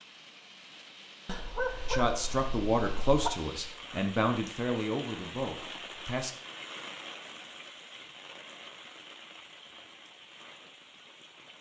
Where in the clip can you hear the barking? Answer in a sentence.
The barking can be heard from 1.2 to 3.3 s.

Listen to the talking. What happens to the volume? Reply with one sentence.
The volume of the talking goes down.